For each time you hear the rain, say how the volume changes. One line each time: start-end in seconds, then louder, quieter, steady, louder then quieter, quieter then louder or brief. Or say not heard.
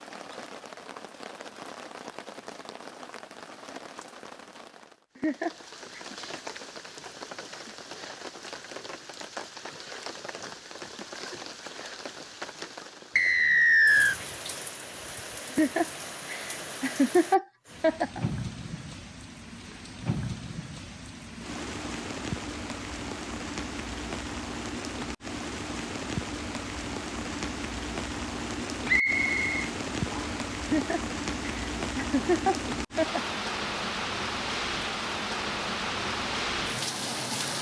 0.0-37.5 louder.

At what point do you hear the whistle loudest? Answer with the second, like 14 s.
14 s.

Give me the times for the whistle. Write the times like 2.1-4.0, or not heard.
13.2-14.2, 28.9-30.4.